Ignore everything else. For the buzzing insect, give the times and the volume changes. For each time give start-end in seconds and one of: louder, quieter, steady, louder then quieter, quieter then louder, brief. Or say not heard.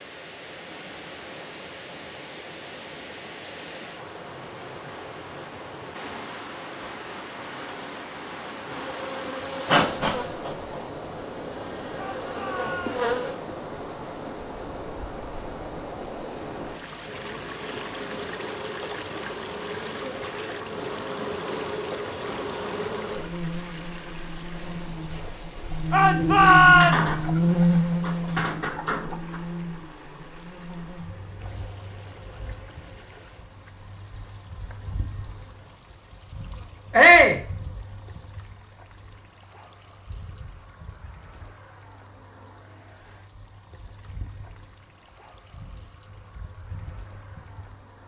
8.7-13.3 quieter then louder
17.0-48.0 louder then quieter.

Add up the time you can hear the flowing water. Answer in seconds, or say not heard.
48 s.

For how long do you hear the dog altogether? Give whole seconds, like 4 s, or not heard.
not heard.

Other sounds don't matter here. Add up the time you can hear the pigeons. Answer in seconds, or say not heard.
3 s.